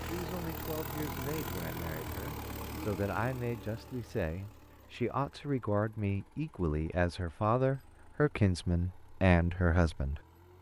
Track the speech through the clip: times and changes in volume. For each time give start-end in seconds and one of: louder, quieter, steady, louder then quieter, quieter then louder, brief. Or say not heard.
0.0-10.5 louder.